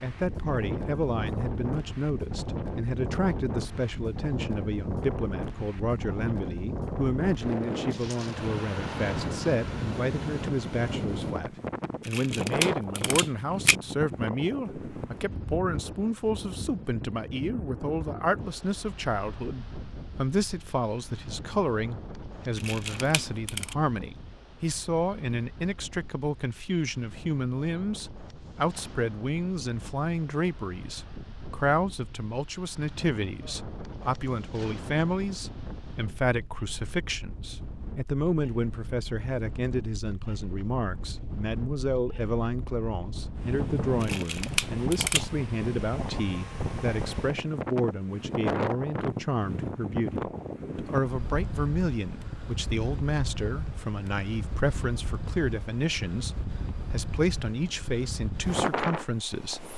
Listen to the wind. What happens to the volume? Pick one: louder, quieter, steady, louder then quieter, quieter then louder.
quieter then louder.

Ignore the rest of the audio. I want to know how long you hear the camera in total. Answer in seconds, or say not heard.
4 s.